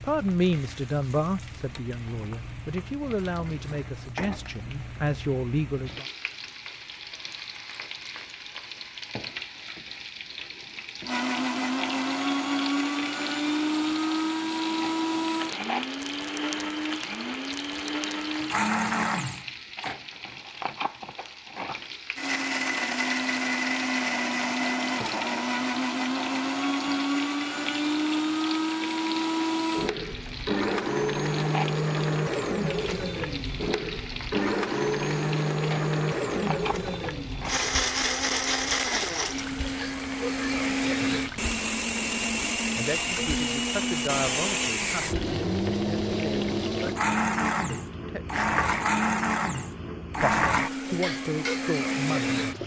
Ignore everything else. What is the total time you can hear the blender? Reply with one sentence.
You can hear the blender for 39 seconds altogether.